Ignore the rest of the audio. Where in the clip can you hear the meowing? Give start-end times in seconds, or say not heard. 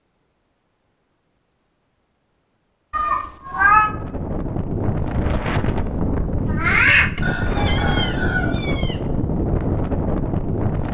2.9-3.9, 6.5-8.9.